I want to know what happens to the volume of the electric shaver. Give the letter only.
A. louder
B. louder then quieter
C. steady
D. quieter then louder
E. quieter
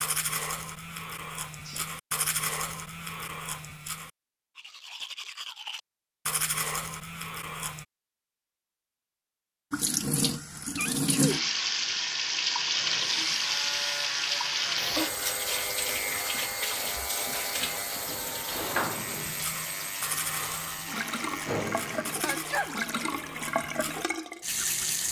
C.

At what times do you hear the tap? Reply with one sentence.
You can hear the tap from 9.7 to 25.0 s.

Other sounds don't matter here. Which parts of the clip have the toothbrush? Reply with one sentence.
The toothbrush can be heard from 0.0 to 7.8 s and from 19.1 to 25.0 s.